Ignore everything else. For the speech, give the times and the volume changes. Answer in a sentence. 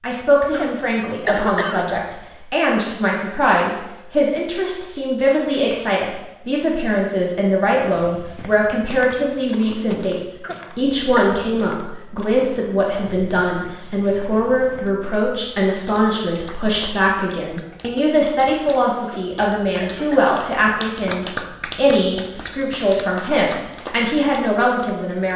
You can hear the speech from 0.0 to 10.2 s, at a steady volume; and from 10.8 to 25.3 s, at a steady volume.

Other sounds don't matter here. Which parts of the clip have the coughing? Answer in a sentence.
The coughing can be heard from 0.5 to 1.9 s, from 10.4 to 11.4 s and from 19.1 to 20.4 s.